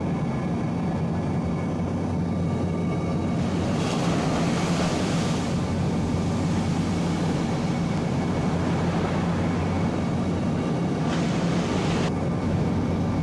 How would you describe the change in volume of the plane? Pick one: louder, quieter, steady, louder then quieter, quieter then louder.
steady.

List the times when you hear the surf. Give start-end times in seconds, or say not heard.
3.2-13.1.